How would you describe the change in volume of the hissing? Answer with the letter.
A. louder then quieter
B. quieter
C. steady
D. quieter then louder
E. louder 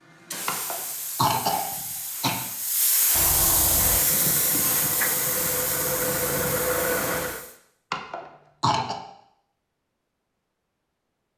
A.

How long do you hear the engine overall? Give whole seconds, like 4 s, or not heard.
4 s.